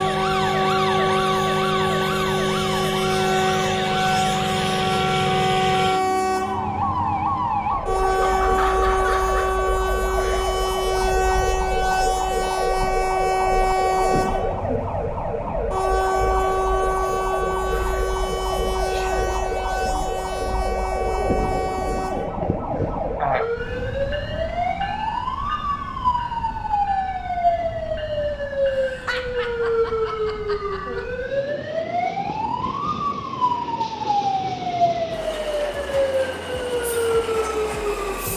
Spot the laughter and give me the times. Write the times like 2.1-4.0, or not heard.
8.2-9.5, 28.8-31.0.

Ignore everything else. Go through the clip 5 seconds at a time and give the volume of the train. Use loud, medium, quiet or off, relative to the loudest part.
loud, loud, loud, loud, medium, quiet, quiet, medium.